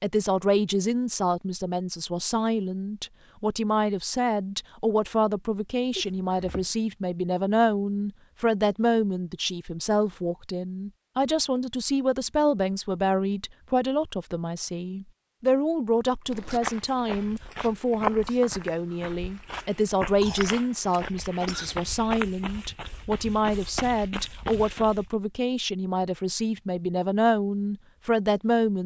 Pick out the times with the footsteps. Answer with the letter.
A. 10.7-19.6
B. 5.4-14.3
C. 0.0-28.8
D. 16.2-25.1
D.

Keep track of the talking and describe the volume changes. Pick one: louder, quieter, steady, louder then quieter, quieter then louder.
steady.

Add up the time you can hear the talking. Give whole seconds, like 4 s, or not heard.
29 s.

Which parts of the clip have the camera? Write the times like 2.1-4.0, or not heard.
not heard.